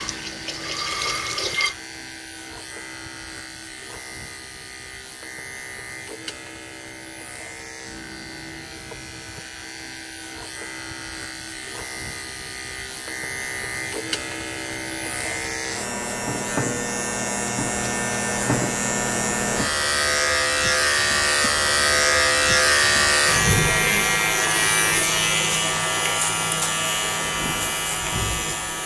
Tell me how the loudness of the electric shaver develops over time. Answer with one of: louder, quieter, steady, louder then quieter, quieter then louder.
louder.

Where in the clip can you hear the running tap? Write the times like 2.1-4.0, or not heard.
0.0-1.8.